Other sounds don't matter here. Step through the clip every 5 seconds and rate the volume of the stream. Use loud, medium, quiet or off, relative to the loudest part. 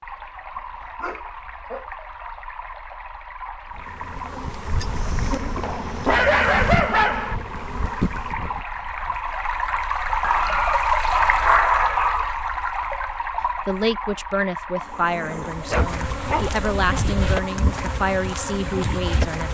quiet, medium, loud, quiet.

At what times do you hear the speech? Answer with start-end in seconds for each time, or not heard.
13.6-19.4.